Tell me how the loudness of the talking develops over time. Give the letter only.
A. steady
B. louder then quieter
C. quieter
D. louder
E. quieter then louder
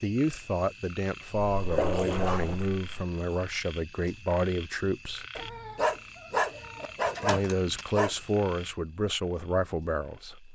A.